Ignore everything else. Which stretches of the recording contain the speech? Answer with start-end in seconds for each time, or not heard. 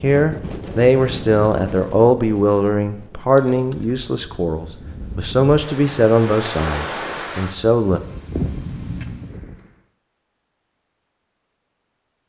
0.0-8.0.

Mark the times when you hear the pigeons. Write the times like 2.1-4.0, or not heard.
not heard.